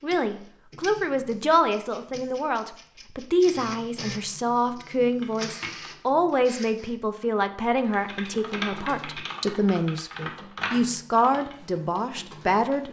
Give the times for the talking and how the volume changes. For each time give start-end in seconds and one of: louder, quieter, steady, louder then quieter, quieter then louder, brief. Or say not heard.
0.0-12.8 steady.